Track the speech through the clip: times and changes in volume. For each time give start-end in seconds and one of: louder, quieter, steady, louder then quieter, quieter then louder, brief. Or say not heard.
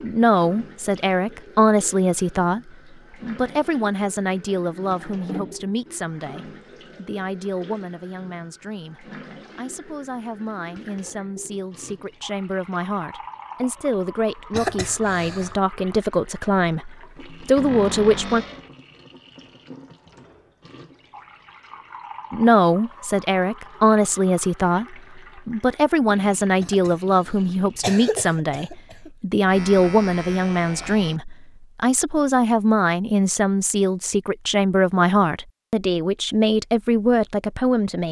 0.0-18.4 quieter then louder
22.3-38.0 steady.